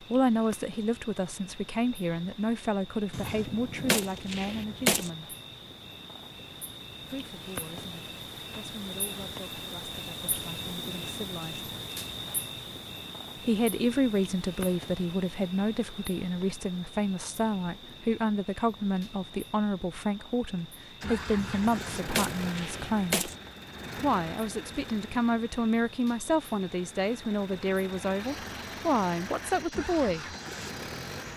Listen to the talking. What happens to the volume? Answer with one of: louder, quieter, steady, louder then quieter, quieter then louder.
quieter then louder.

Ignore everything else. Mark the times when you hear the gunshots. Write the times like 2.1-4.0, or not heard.
3.1-5.1, 21.4-23.4.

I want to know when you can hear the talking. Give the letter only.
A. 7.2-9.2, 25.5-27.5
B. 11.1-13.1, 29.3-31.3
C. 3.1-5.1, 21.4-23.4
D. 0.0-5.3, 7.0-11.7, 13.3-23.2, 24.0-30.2
D.